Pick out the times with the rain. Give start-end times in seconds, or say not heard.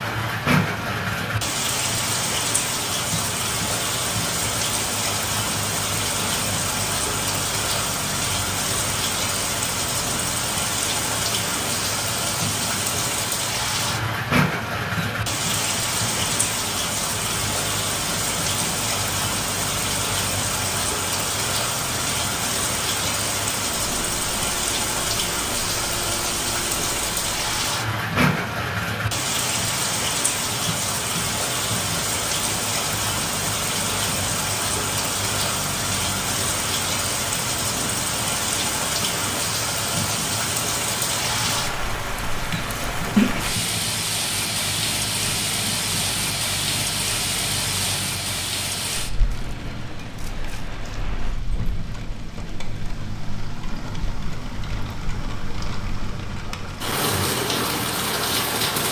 0.0-58.8.